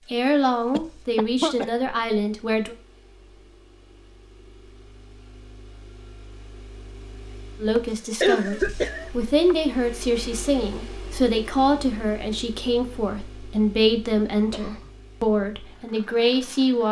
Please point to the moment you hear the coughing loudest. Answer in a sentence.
The loudest moment of the coughing is at 8 seconds.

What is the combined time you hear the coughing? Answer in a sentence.
The coughing can be heard for 3 seconds in total.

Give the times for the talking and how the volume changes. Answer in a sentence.
You can hear the talking briefly from 0.1 to 2.8 s; and from 7.6 to 16.8 s, at a steady volume.